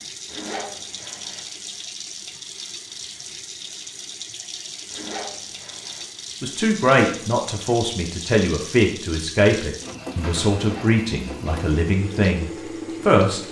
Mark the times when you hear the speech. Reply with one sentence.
The speech can be heard from 6.4 to 13.4 s.